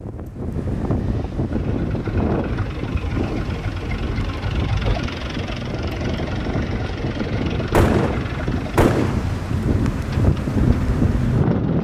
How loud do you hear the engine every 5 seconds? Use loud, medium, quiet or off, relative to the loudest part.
loud, loud, medium.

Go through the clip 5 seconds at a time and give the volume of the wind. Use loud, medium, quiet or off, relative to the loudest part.
medium, medium, loud.